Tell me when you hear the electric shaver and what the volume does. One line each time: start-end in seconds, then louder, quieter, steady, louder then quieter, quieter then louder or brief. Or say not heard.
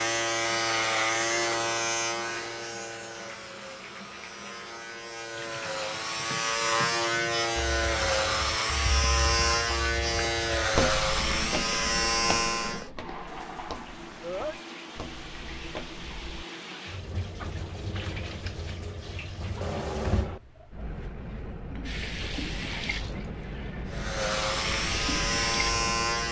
0.0-12.9 quieter then louder
23.9-26.2 brief.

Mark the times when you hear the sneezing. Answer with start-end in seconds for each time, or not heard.
14.2-14.8.